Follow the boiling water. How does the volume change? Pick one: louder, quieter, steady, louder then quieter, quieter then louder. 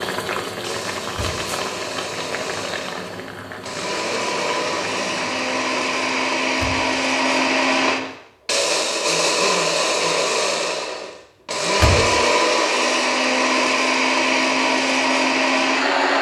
quieter.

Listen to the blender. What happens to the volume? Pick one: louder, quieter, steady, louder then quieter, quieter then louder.
louder.